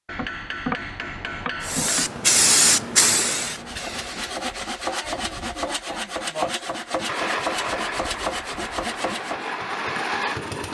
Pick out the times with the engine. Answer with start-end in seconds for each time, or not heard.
7.0-10.6.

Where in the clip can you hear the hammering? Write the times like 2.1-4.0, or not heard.
0.1-2.1.